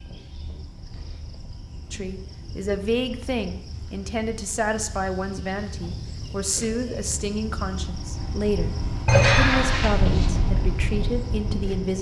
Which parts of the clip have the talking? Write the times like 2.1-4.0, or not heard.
1.9-11.9.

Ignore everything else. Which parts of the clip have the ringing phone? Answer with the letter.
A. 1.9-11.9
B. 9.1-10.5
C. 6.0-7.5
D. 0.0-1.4
B.